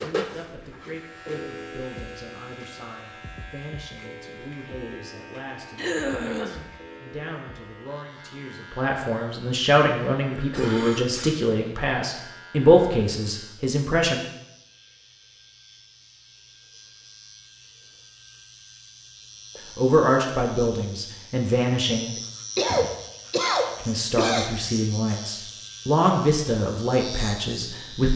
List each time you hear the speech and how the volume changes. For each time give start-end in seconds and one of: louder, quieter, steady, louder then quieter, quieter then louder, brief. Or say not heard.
0.0-14.2 louder
19.8-22.1 brief
23.8-28.1 louder then quieter.